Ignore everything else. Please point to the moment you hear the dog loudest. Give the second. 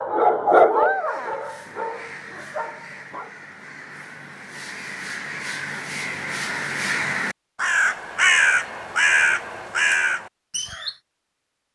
1 s.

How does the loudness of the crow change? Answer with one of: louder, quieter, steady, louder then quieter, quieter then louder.
louder.